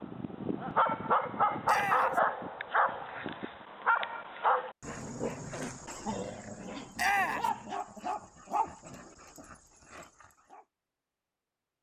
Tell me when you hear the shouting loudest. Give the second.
7 s.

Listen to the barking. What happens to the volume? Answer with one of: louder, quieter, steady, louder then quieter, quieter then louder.
quieter.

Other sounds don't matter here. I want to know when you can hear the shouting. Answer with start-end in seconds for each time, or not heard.
1.6-2.2, 7.0-7.5.